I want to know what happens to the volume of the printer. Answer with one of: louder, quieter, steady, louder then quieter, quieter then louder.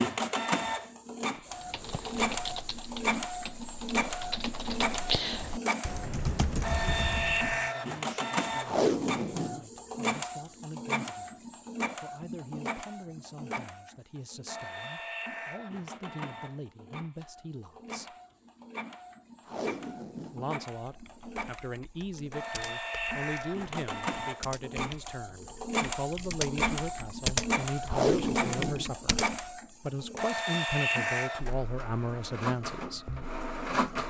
quieter then louder.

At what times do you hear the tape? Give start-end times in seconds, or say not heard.
8.7-9.6, 19.4-20.5, 27.9-28.9.